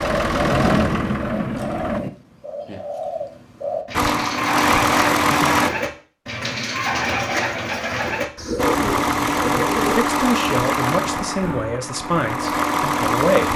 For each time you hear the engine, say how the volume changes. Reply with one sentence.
The engine can be heard briefly from 0.0 to 2.0 s; briefly from 3.9 to 5.7 s; and from 8.6 to 13.5 s, getting quieter then louder.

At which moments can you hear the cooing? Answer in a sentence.
You can hear the cooing from 0.0 to 9.9 s.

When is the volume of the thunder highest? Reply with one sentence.
The loudest moment of the thunder is at 1 second.